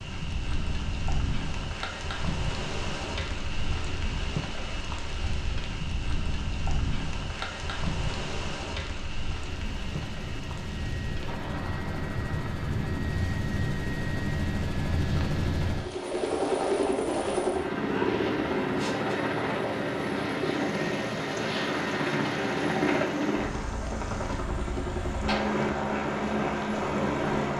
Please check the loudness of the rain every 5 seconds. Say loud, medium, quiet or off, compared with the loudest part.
loud, loud, medium, medium, medium, medium.